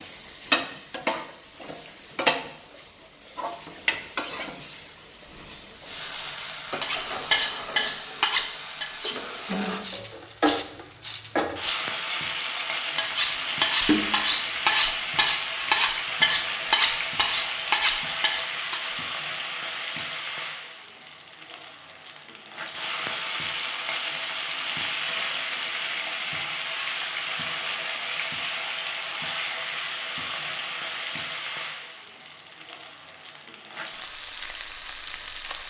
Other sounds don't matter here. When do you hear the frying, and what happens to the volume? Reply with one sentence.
The frying can be heard from 0.0 to 35.6 s, at a steady volume.